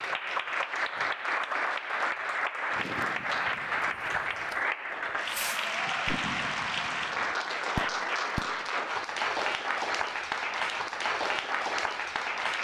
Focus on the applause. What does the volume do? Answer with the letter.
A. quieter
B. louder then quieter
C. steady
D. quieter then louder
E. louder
C.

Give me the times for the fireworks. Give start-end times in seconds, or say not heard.
2.7-4.6, 5.2-8.7.